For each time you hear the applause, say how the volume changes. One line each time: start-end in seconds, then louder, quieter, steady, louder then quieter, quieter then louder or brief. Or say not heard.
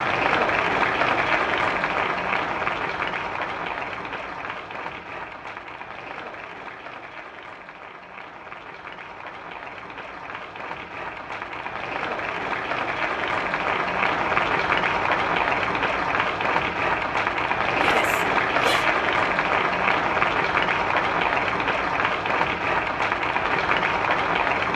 0.0-24.7 quieter then louder.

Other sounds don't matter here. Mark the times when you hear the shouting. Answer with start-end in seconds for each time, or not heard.
17.8-18.9.